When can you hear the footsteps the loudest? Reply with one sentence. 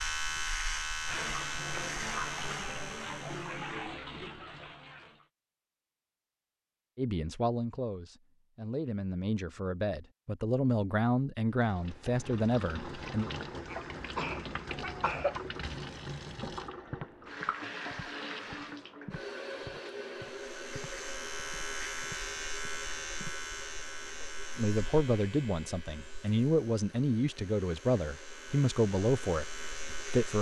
The loudest moment of the footsteps is at 17 seconds.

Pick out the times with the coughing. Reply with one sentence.
The coughing can be heard from 13.7 to 15.4 s.